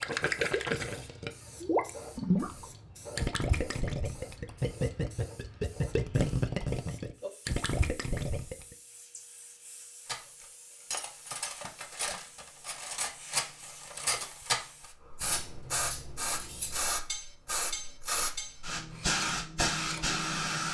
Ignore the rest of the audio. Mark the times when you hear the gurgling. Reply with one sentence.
The gurgling can be heard from 0.0 to 8.8 s.